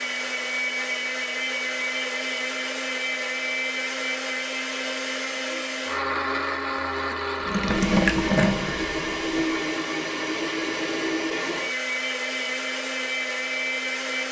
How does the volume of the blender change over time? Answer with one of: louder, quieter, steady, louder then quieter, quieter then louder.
steady.